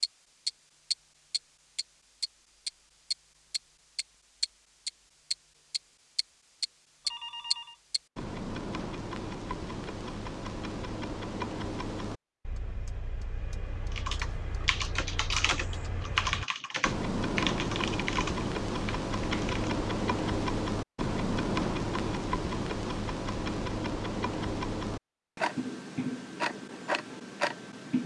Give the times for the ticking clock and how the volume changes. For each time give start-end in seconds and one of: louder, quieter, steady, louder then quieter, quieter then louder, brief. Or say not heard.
0.0-28.0 quieter then louder.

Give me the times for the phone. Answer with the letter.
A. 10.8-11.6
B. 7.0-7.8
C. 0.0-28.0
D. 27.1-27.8
B.